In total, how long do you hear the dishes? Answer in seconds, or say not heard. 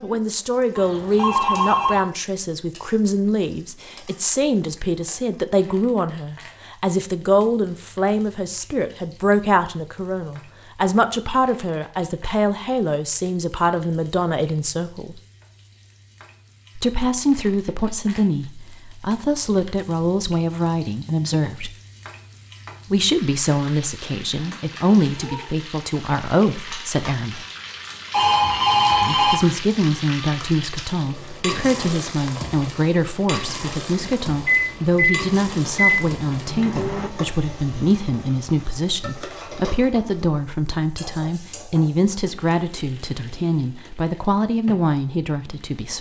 not heard.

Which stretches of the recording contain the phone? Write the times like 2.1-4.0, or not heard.
0.8-2.0, 28.1-29.4.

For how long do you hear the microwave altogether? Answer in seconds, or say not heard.
3 s.